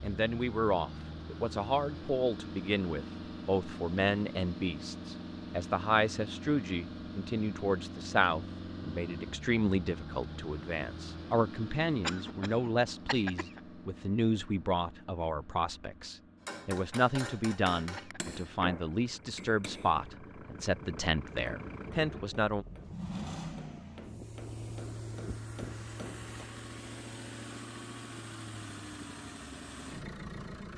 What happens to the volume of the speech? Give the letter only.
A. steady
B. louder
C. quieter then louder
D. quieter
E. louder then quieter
A.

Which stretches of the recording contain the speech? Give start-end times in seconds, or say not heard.
0.0-22.6.